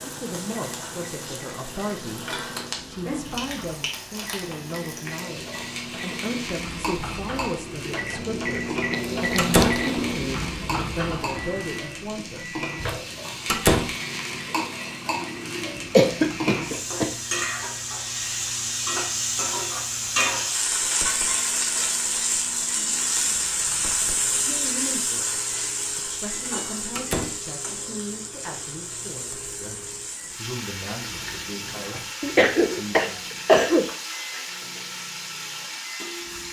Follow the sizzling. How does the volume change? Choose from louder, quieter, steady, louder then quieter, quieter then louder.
louder then quieter.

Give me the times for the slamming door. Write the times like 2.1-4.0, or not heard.
9.3-9.8, 13.4-13.9, 26.9-27.4.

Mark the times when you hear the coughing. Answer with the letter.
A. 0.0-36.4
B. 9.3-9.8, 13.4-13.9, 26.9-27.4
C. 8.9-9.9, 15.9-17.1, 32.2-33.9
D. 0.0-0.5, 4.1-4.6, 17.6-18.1
C.